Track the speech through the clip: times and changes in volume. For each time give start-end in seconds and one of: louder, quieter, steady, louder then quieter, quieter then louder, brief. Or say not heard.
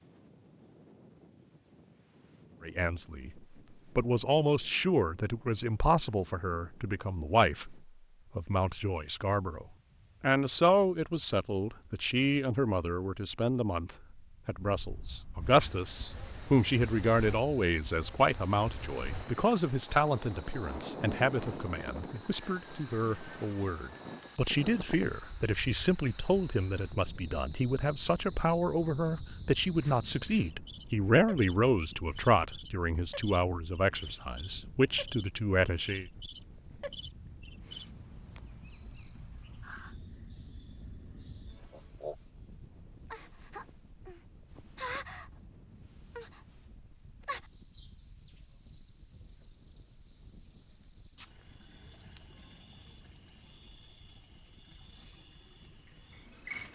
2.6-3.3 brief
4.0-36.0 steady.